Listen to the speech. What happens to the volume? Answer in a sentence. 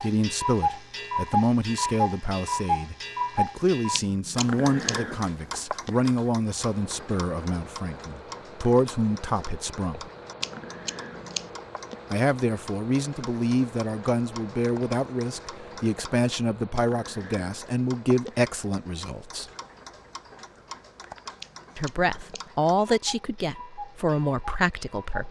The volume of the speech stays about the same.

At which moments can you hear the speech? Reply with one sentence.
You can hear the speech from 0.0 to 10.1 s, from 12.1 to 19.4 s and from 21.8 to 25.2 s.